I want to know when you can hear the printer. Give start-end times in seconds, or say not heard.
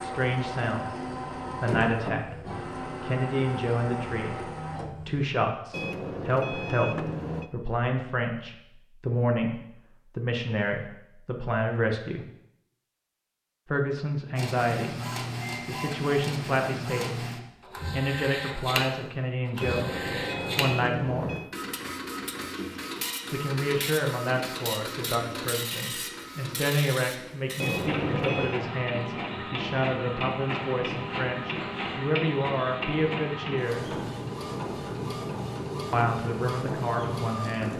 0.0-5.2, 14.3-37.7.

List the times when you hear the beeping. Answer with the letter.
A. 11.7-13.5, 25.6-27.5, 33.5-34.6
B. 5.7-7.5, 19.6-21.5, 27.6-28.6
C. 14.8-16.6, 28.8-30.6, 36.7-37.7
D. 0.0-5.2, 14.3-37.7
B.